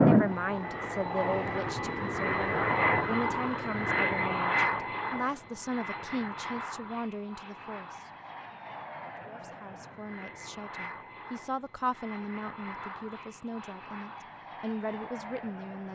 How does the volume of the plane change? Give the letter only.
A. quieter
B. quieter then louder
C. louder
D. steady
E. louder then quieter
A.